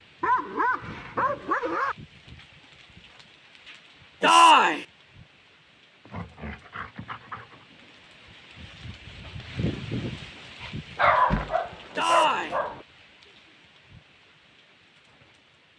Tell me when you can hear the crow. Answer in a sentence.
You can't hear the crow here.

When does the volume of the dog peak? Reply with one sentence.
The volume of the dog peaks at 11 seconds.